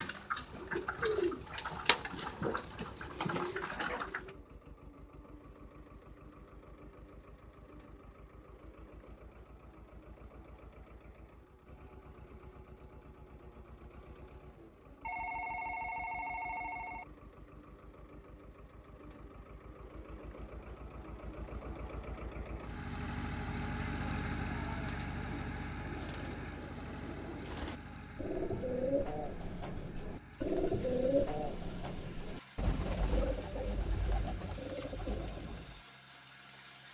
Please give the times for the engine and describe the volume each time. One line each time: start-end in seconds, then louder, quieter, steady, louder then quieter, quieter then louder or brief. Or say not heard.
0.1-36.8 louder then quieter.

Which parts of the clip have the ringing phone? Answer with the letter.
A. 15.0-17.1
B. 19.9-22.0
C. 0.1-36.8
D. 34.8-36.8
A.